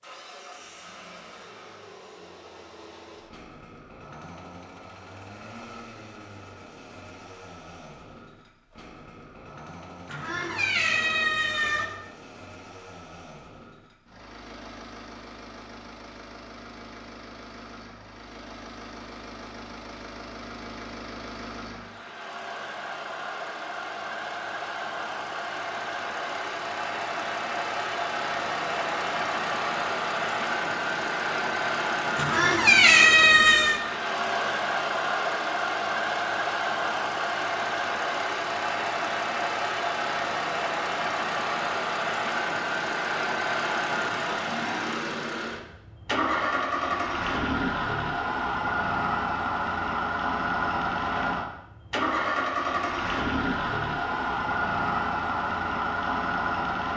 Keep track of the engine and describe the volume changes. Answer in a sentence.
The volume of the engine goes up.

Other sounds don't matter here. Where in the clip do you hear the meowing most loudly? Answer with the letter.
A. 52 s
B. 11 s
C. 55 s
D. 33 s
D.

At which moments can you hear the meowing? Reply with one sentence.
The meowing can be heard from 10.1 to 11.8 s and from 32.1 to 33.8 s.